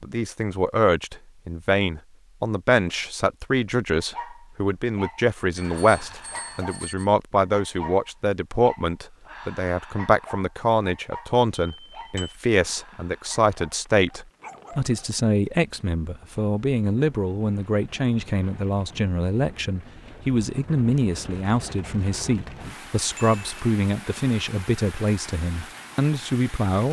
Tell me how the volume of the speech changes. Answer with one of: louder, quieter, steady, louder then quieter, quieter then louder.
steady.